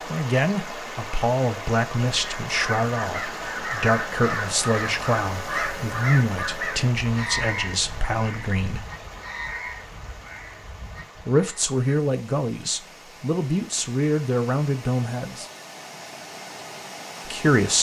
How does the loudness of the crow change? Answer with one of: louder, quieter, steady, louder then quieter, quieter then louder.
quieter.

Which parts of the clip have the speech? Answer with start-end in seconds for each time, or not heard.
0.1-8.8, 11.2-15.4, 17.2-17.7.